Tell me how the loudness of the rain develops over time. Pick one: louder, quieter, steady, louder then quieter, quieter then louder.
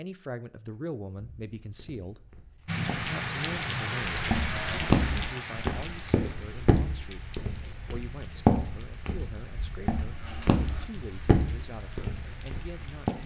quieter.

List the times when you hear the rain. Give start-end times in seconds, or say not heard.
2.6-13.2.